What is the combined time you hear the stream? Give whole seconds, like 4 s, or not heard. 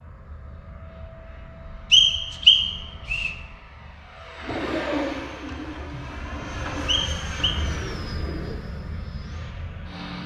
not heard.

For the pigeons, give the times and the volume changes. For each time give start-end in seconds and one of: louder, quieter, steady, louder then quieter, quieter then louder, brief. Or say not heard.
4.4-8.6 quieter.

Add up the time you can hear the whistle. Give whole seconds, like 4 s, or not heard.
2 s.